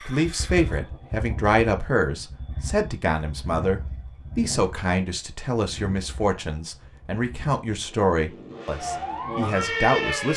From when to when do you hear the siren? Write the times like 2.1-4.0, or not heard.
8.8-10.3.